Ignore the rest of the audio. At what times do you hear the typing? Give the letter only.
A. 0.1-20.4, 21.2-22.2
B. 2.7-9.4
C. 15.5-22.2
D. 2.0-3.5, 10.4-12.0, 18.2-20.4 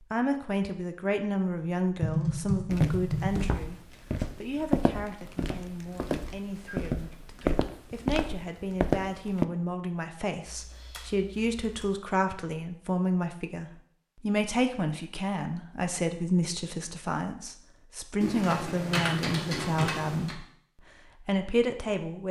D.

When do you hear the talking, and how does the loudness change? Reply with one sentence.
You can hear the talking from 0.1 to 20.4 s, getting quieter then louder; and briefly from 21.2 to 22.2 s.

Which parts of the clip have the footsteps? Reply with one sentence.
The footsteps can be heard from 2.7 to 9.4 s.